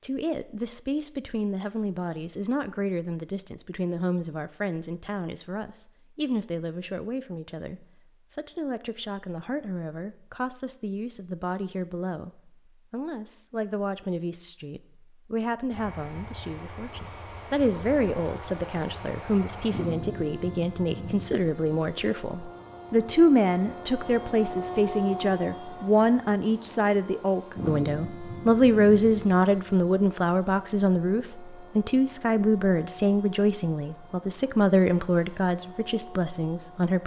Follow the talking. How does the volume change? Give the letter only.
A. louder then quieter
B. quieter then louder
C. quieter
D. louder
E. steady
D.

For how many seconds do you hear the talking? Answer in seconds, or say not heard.
37 s.